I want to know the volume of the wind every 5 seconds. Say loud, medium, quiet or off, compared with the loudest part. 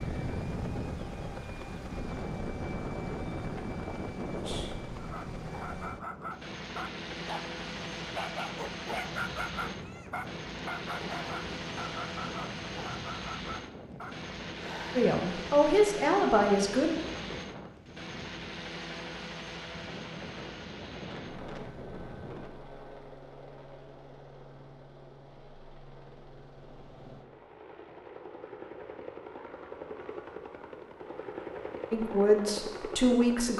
loud, medium, medium, medium, medium, off, off.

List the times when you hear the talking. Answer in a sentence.
You can hear the talking from 14.9 to 16.9 s and from 31.9 to 33.5 s.